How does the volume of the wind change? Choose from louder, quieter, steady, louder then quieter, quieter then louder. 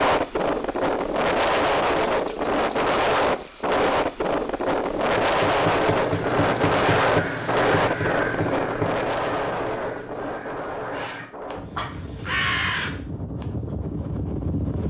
quieter.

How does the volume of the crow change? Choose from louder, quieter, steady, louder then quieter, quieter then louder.
quieter then louder.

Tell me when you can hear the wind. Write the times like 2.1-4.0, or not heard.
0.0-14.8.